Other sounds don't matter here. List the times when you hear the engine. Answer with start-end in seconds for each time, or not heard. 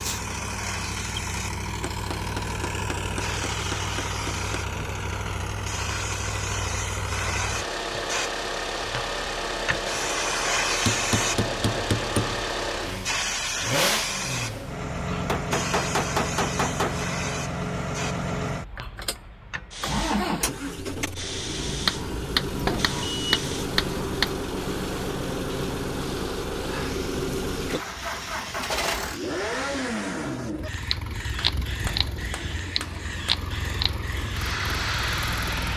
0.0-35.7.